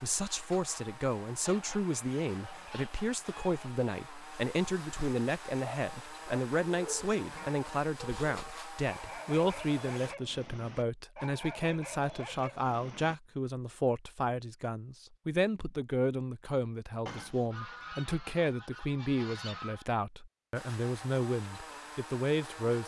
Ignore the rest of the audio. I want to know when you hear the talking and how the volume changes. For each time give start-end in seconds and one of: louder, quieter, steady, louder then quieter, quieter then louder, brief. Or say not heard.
0.0-22.8 steady.